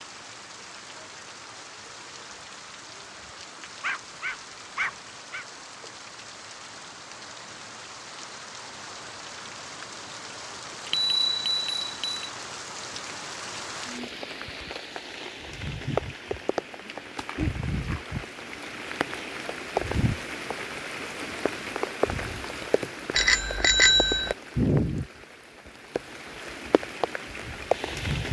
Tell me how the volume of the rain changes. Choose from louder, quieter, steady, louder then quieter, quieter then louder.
louder.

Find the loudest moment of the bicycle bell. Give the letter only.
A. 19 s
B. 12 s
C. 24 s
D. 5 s
C.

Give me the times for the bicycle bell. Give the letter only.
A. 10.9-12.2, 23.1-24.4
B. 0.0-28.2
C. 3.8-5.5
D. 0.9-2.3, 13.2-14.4
A.